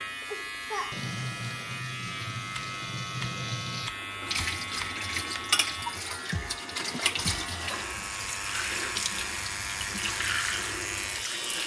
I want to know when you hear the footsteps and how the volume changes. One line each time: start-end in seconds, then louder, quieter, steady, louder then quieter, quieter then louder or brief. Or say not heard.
not heard.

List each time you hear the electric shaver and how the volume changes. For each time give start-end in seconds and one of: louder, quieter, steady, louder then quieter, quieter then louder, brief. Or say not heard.
0.0-11.6 steady.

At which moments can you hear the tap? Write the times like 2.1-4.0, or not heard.
0.0-11.6.